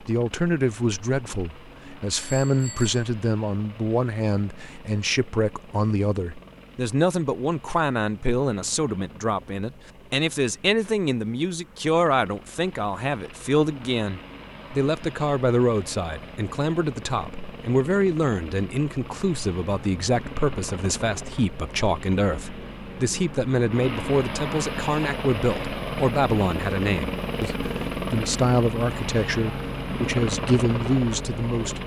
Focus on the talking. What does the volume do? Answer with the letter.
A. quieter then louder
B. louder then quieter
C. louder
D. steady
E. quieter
D.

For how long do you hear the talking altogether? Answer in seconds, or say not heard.
32 s.